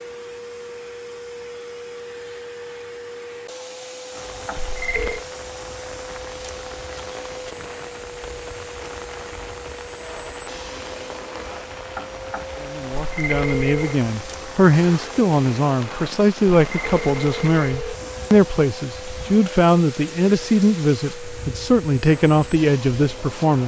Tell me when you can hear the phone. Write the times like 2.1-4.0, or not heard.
4.5-5.2, 13.1-14.0, 16.7-17.9.